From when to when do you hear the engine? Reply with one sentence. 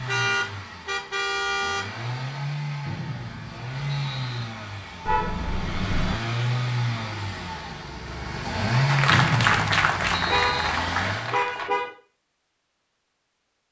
The engine can be heard from 0.0 to 11.3 s.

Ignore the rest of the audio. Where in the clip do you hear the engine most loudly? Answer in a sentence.
The loudest moment of the engine is at 9 seconds.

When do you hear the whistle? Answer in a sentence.
You can hear the whistle from 2.9 to 4.5 s and from 9.1 to 10.7 s.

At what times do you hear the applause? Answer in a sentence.
You can hear the applause from 8.8 to 11.7 s.